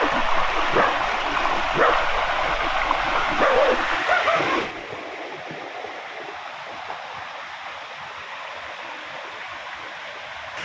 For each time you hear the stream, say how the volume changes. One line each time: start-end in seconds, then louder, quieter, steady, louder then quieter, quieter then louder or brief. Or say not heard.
0.0-10.5 quieter.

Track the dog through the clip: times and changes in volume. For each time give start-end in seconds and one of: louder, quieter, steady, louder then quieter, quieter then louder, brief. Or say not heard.
0.0-4.7 quieter then louder.